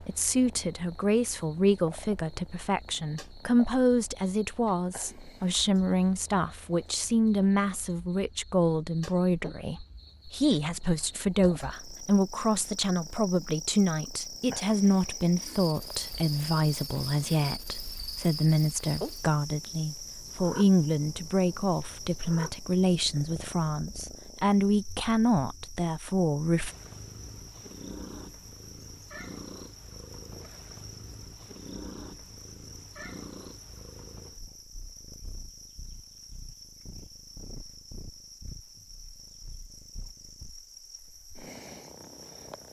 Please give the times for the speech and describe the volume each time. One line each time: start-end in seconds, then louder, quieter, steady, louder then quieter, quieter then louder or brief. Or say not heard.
0.0-26.7 steady.